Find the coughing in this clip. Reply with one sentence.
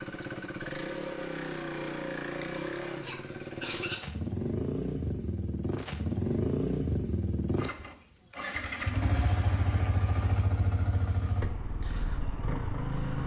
You can hear the coughing from 3.0 to 4.0 s.